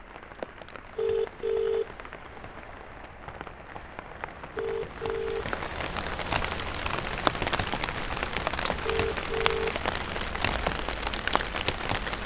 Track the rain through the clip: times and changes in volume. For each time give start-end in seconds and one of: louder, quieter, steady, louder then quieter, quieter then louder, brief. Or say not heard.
0.0-12.2 louder.